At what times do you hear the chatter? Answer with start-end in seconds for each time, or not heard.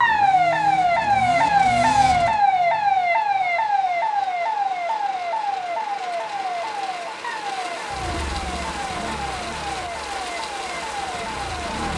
not heard.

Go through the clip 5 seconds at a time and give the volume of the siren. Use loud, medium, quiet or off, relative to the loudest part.
loud, medium, quiet.